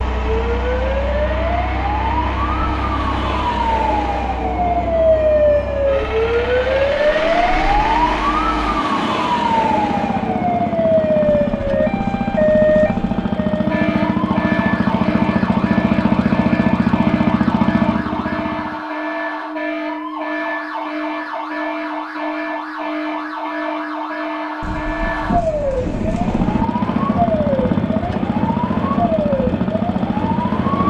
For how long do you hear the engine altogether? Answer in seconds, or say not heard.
24 s.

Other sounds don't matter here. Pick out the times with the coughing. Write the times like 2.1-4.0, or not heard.
not heard.